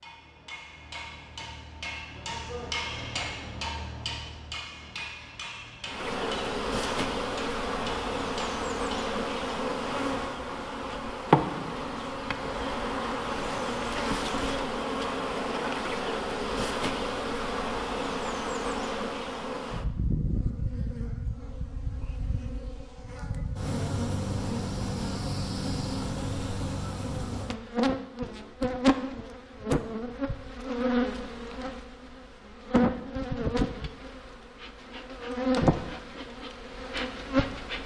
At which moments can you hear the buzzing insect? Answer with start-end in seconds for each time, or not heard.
5.8-37.8.